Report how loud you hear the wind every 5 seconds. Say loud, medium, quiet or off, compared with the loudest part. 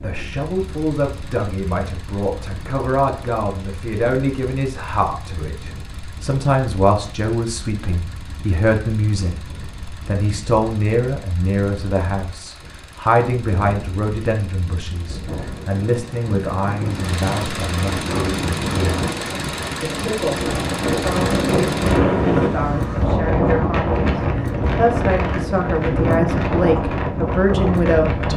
quiet, quiet, quiet, medium, loud, loud.